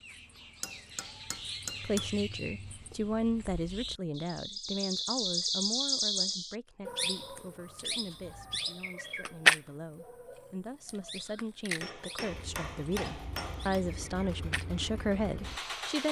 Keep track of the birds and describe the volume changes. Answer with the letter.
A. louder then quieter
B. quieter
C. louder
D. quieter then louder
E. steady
A.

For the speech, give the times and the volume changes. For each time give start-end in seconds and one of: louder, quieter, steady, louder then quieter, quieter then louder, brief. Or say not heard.
1.8-16.0 quieter then louder.